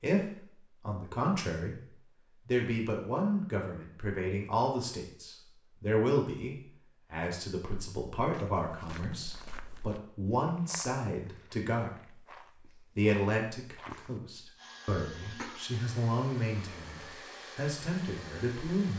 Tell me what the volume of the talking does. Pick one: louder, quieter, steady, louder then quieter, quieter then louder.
steady.